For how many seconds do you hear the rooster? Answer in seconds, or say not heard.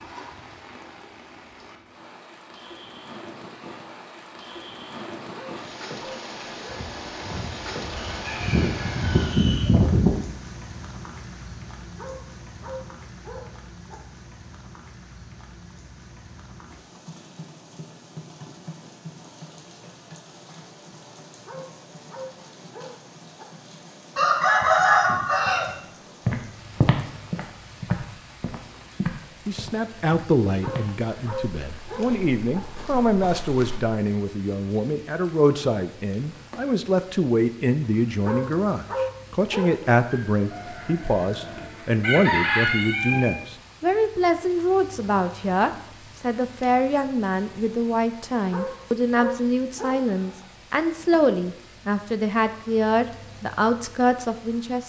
8 s.